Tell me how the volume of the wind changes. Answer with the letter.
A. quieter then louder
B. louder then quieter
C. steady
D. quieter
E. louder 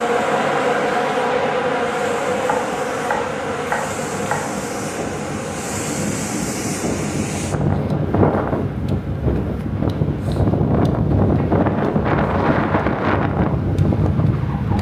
E.